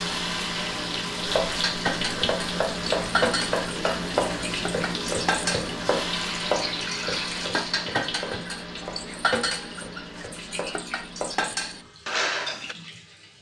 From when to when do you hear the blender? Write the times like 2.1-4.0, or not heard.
not heard.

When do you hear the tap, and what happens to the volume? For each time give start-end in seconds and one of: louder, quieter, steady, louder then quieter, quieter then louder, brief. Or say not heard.
0.0-13.3 quieter.